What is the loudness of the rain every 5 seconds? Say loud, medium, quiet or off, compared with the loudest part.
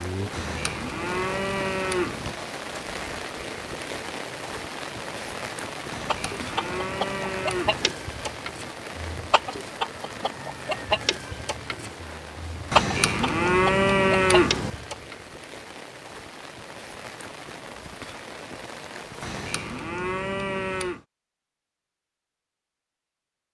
loud, loud, medium, medium, off.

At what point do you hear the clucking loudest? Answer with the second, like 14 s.
13 s.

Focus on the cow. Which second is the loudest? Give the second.
14 s.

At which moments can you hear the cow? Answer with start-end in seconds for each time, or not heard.
0.3-2.4, 5.9-7.9, 12.7-14.7, 19.2-21.0.